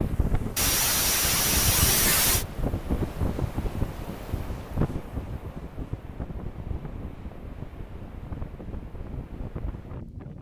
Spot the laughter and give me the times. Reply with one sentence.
The laughter can be heard from 0.6 to 2.5 s.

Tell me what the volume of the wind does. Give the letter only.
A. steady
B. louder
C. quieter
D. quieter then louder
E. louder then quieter
C.